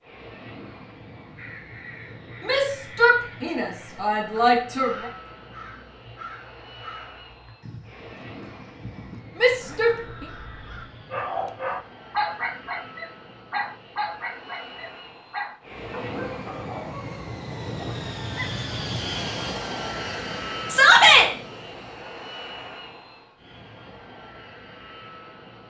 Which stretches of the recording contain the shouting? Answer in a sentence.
The shouting can be heard from 2.4 to 5.1 s, from 9.4 to 10.2 s and from 20.7 to 21.3 s.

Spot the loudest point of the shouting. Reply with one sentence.
The volume of the shouting peaks at 21 seconds.